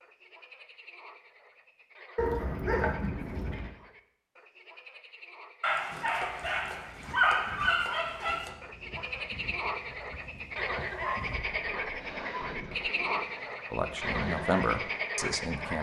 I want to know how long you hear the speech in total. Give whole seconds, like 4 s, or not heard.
2 s.